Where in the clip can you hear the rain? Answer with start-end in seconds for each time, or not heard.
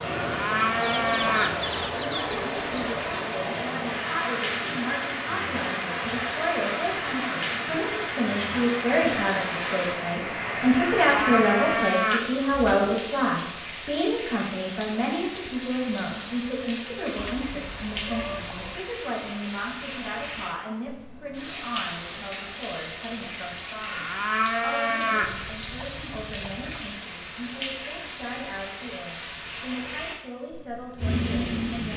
0.0-31.9.